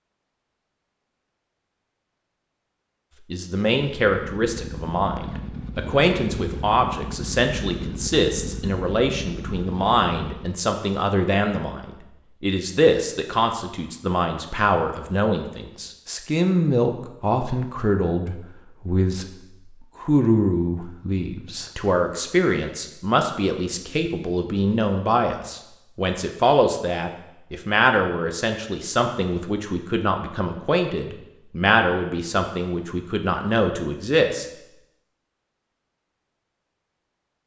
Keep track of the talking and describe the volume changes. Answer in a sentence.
The loudness of the talking stays about the same.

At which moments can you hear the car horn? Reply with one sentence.
The car horn can't be heard in this clip.